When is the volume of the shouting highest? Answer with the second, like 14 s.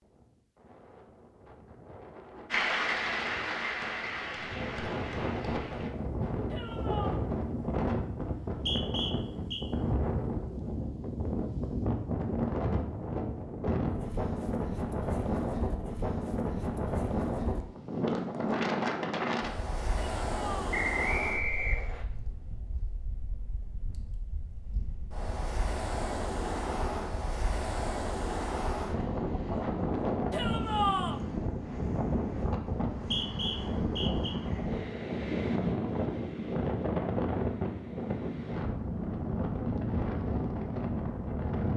31 s.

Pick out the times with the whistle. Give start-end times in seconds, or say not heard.
8.2-9.7, 20.7-22.1, 33.0-34.4.